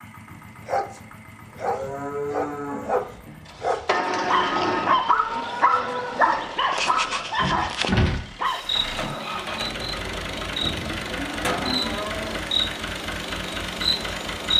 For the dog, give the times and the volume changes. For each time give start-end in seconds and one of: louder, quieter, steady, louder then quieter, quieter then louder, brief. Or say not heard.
0.5-8.7 louder.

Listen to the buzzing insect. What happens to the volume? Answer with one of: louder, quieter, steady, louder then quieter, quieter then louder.
louder.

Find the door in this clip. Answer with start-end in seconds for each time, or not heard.
3.9-5.0, 7.3-8.2.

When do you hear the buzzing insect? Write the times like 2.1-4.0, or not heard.
8.4-14.5.